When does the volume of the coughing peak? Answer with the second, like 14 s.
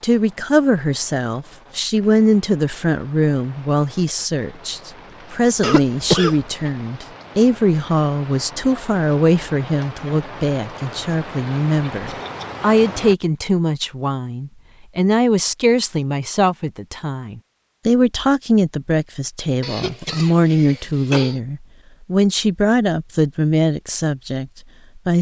6 s.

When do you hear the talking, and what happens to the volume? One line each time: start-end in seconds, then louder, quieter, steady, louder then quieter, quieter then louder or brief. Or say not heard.
0.0-25.1 steady.